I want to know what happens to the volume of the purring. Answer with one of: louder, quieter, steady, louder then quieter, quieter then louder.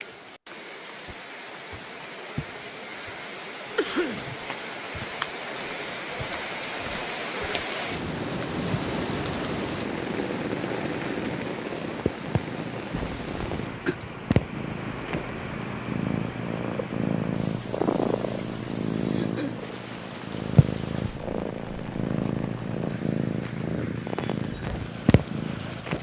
louder.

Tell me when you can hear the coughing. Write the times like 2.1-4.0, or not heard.
3.8-4.3, 12.9-13.9, 19.1-19.6.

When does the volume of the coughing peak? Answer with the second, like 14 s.
4 s.